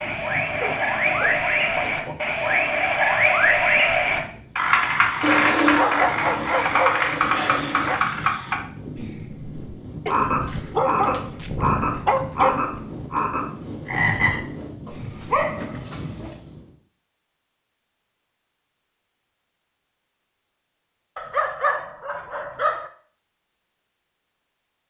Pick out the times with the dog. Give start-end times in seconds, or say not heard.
0.6-2.1, 5.2-8.1, 10.1-12.8, 14.8-16.4, 21.1-22.9.